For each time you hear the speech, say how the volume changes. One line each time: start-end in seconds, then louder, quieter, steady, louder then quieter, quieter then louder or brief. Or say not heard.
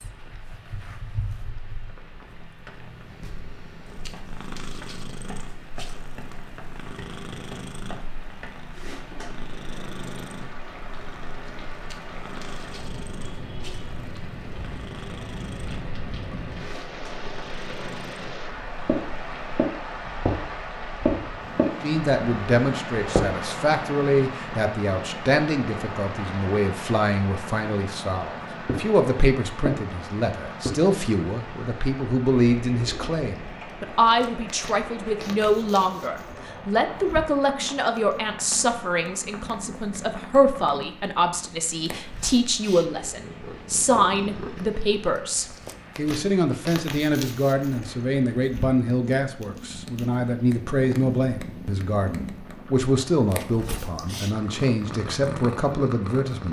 21.8-56.4 steady.